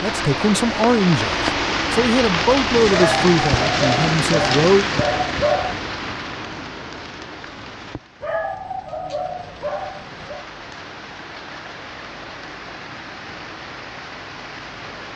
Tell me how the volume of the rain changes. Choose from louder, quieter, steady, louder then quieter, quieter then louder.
quieter.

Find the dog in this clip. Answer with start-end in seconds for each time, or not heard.
2.9-5.8, 8.2-10.4.